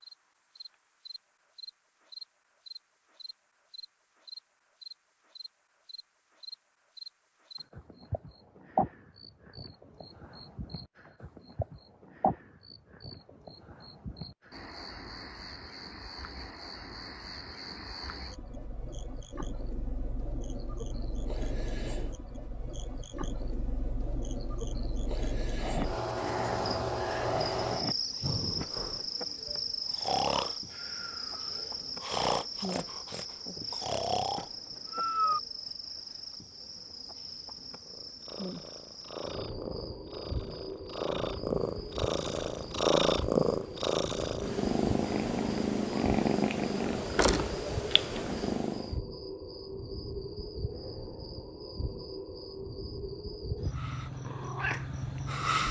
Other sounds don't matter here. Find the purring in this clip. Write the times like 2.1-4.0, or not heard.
37.8-48.9, 53.7-55.6.